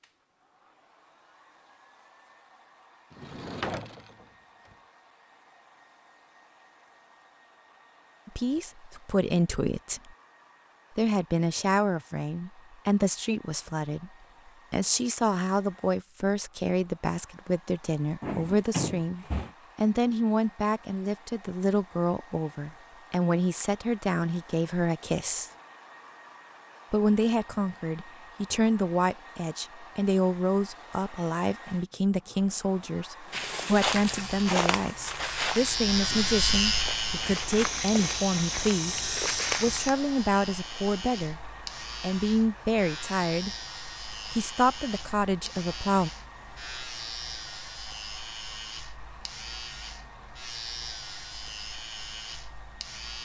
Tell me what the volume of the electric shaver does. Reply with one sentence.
The volume of the electric shaver goes down.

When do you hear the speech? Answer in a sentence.
You can hear the speech from 8.2 to 10.1 s, from 10.9 to 14.1 s, from 14.7 to 25.5 s, from 26.9 to 41.4 s, from 42.0 to 43.5 s and from 44.3 to 46.1 s.